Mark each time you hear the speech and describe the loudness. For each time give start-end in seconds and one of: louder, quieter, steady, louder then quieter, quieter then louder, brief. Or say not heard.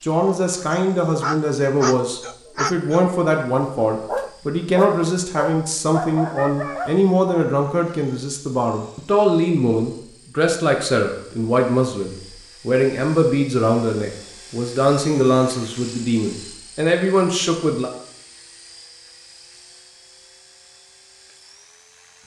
0.0-17.9 steady.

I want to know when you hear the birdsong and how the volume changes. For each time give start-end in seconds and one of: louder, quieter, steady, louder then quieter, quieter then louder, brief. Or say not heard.
not heard.